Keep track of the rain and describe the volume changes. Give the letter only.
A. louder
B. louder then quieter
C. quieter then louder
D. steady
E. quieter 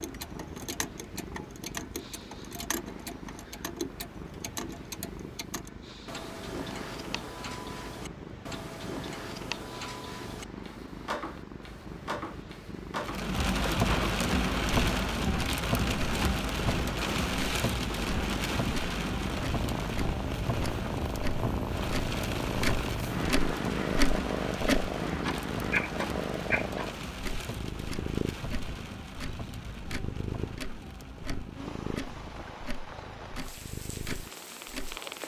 E.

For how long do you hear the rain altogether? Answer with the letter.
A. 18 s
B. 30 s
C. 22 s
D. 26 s
C.